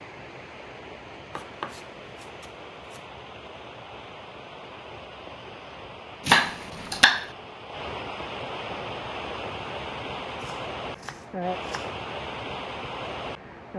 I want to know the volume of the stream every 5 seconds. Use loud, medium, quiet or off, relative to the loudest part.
medium, loud, loud.